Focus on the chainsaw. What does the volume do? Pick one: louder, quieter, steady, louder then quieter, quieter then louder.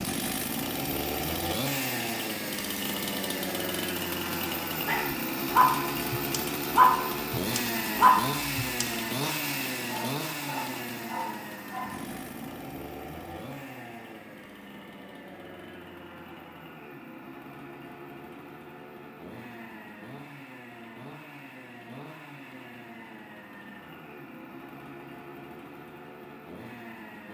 quieter.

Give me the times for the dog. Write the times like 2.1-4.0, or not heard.
4.8-11.9.